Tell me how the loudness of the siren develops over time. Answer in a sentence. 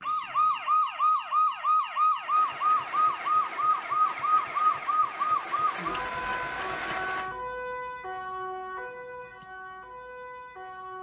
The loudness of the siren goes down.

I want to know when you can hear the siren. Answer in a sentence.
You can hear the siren from 0.0 to 10.9 s.